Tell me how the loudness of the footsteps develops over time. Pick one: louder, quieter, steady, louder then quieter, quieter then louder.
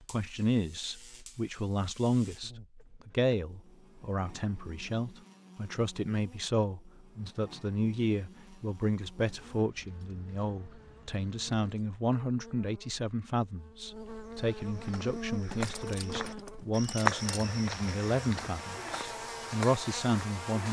louder then quieter.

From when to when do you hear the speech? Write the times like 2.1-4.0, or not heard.
0.1-20.6.